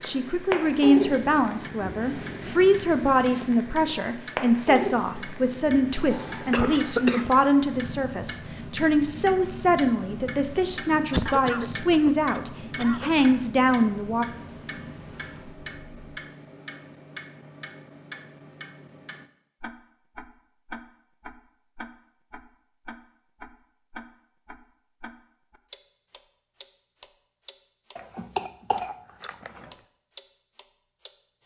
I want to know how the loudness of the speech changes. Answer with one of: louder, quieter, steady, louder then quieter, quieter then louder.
steady.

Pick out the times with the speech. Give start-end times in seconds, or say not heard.
0.0-14.2.